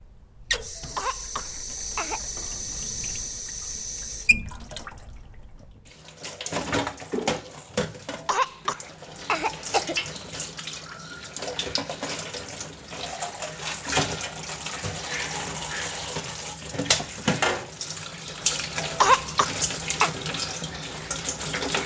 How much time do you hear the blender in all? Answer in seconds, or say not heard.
not heard.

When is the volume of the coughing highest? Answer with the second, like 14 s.
19 s.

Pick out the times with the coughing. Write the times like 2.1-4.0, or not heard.
0.8-2.2, 8.1-10.0, 18.8-20.1.